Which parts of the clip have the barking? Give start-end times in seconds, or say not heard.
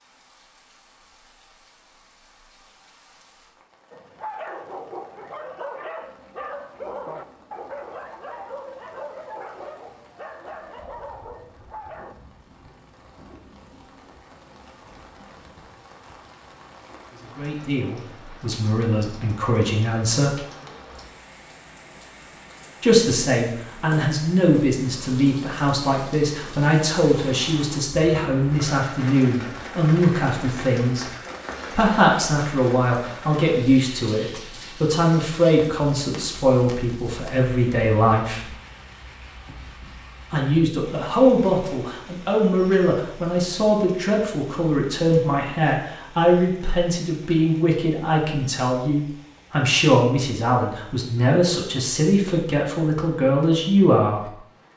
3.9-12.2.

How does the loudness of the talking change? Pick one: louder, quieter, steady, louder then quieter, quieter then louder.
steady.